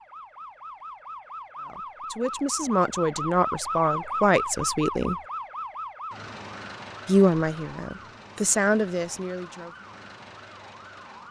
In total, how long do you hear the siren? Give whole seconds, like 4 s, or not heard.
11 s.